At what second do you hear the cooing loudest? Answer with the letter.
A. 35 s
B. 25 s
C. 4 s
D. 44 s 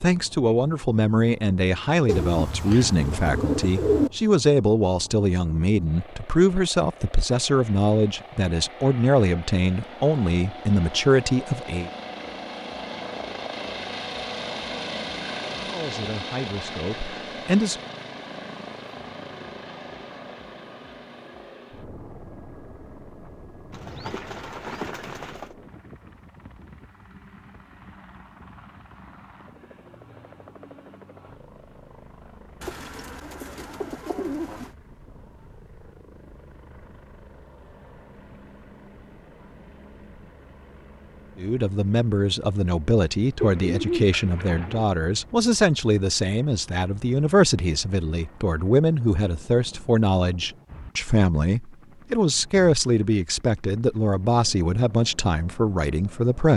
C.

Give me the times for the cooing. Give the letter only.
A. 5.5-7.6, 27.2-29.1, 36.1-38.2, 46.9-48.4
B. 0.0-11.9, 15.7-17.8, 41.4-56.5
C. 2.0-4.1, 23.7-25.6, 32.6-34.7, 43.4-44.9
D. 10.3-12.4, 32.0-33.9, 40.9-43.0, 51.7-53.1
C.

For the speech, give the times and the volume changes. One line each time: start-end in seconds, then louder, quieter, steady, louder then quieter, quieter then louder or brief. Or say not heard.
0.0-11.9 steady
15.7-17.8 brief
41.4-56.5 steady.